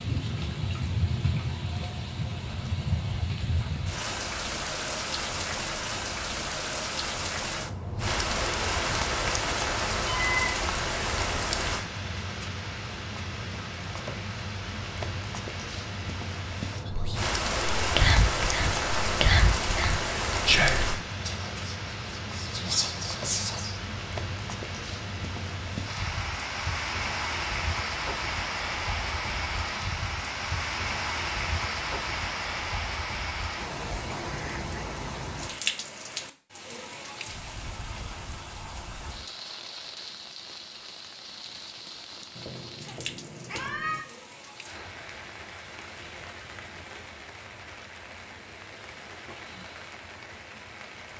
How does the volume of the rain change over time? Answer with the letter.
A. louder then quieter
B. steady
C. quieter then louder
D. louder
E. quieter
E.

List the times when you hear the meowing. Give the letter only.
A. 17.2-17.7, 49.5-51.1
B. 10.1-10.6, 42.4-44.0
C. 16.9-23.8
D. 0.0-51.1
B.